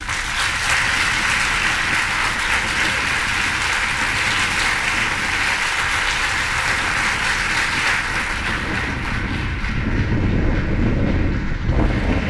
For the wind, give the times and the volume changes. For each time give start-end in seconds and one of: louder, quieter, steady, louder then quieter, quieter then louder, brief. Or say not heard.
0.0-12.2 louder.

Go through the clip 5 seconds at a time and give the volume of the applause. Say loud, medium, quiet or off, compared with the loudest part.
loud, loud, quiet.